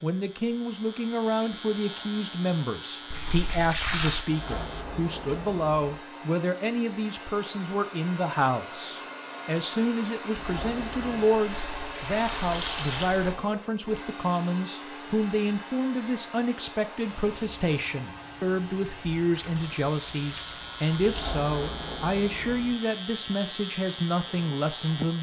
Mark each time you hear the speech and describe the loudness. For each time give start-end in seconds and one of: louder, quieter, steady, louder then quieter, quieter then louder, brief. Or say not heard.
0.0-25.1 steady.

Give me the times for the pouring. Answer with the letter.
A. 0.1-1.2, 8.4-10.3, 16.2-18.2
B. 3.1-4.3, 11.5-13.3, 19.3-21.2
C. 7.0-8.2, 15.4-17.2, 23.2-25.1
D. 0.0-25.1
B.